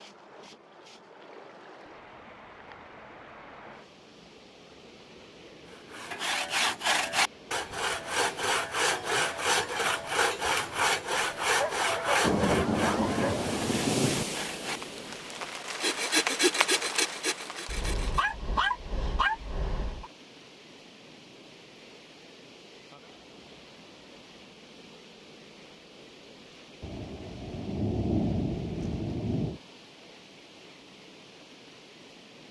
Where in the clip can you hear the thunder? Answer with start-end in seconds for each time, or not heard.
12.2-14.2, 26.8-29.6.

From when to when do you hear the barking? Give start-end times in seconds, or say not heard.
11.6-13.4, 17.6-20.1.